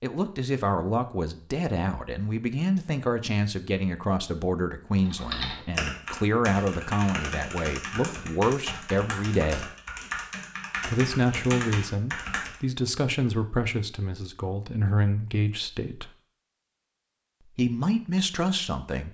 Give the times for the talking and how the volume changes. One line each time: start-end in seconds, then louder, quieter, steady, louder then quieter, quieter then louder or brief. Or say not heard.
0.0-9.7 steady
10.8-16.1 quieter then louder
17.6-19.1 brief.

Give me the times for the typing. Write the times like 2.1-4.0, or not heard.
5.0-12.6.